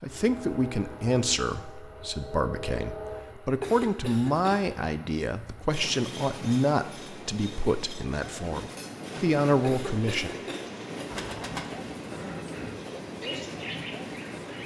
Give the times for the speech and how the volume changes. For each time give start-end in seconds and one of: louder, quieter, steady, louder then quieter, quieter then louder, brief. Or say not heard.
0.0-10.3 steady.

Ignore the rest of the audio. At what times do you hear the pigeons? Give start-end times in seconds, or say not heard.
10.2-14.6.